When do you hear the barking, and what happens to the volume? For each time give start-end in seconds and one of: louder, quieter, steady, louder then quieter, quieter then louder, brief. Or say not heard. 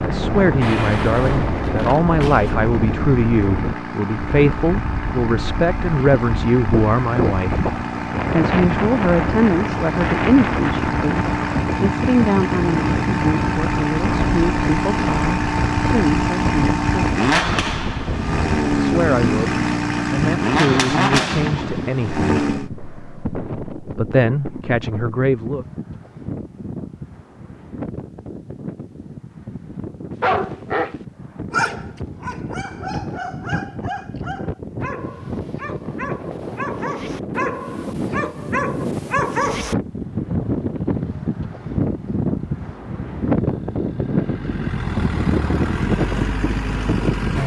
30.2-39.8 quieter then louder.